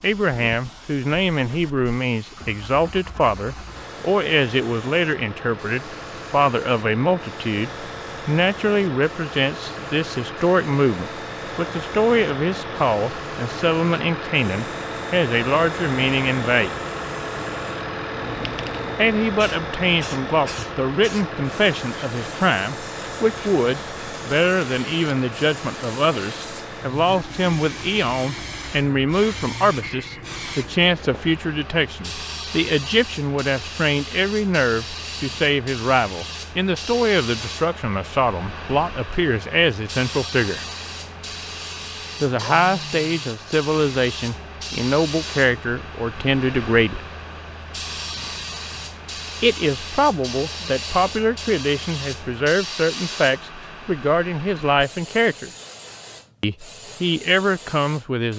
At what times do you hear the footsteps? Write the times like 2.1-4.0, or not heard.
not heard.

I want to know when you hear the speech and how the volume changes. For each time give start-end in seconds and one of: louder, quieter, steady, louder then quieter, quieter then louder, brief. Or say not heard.
0.0-16.8 steady
18.9-40.6 steady
42.2-47.0 steady
49.4-55.5 steady
56.4-58.3 brief.